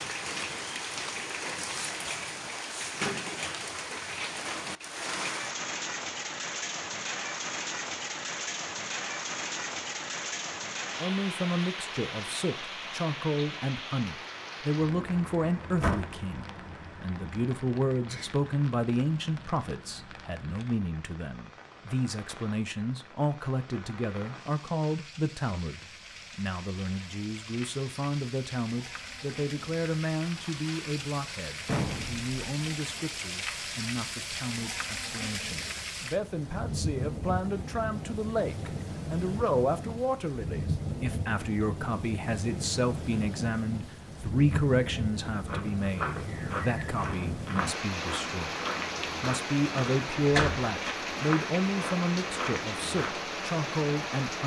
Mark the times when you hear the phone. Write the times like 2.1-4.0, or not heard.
not heard.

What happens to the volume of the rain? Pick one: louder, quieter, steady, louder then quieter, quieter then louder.
quieter then louder.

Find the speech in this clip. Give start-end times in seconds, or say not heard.
10.9-54.4.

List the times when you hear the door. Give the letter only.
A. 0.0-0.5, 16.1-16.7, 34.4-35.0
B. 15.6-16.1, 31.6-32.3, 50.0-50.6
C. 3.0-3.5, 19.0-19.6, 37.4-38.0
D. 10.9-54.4
B.